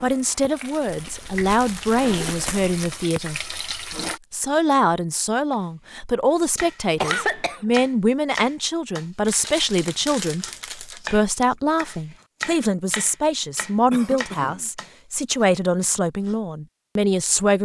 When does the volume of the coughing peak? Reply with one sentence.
The volume of the coughing peaks at 7 seconds.